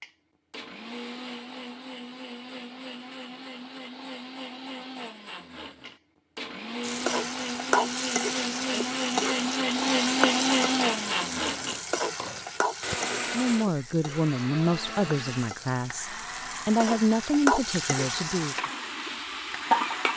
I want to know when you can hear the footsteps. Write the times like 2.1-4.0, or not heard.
not heard.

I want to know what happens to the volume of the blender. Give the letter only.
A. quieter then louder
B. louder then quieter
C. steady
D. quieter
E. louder
B.